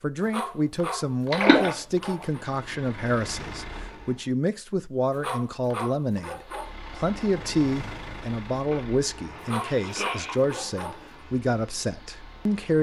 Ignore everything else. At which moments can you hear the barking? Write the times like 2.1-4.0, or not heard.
0.2-2.5, 5.1-6.7, 9.3-11.2.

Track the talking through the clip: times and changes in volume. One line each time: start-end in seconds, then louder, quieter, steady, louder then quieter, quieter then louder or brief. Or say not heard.
0.0-12.7 steady.